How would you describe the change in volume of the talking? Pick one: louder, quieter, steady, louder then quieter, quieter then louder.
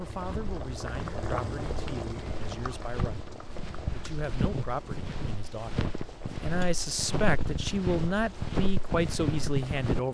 louder.